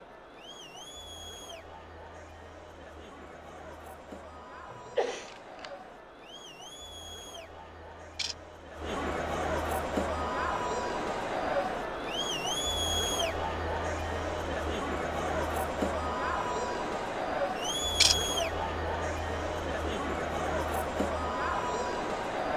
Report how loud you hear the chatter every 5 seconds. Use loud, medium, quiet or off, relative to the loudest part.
quiet, medium, loud, loud, loud.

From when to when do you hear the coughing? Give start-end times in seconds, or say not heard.
4.7-5.3.